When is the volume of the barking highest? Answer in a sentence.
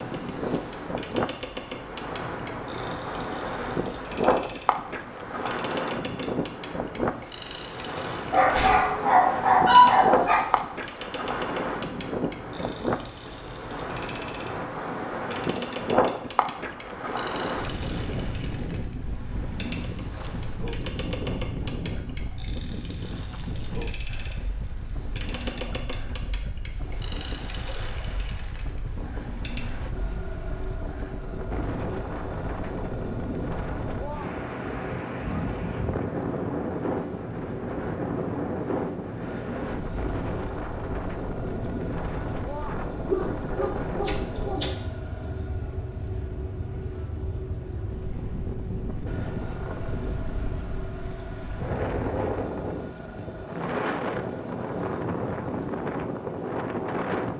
The loudest moment of the barking is at 10 seconds.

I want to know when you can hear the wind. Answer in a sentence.
The wind can be heard from 0.0 to 57.3 s.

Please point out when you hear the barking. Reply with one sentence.
The barking can be heard from 8.3 to 10.4 s and from 43.0 to 44.7 s.